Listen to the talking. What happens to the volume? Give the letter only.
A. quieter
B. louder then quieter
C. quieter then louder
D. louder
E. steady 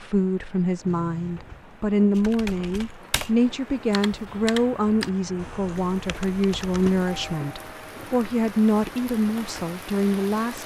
E.